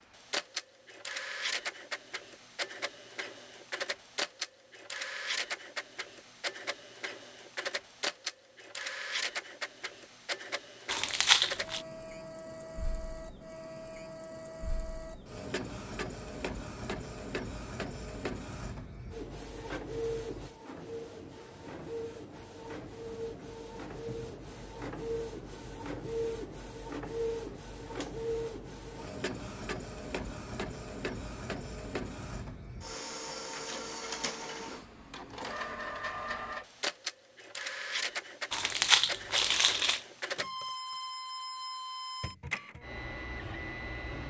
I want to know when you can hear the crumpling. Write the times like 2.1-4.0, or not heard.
10.9-11.8, 38.5-40.0.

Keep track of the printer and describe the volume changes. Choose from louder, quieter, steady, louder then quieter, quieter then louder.
steady.